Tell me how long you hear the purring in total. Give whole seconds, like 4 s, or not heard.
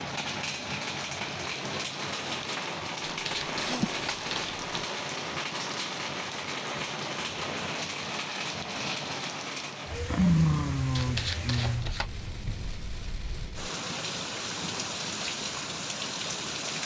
not heard.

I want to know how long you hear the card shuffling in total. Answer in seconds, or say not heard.
3 s.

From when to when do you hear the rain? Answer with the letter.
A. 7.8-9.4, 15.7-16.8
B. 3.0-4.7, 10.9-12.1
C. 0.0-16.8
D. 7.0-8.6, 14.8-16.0
C.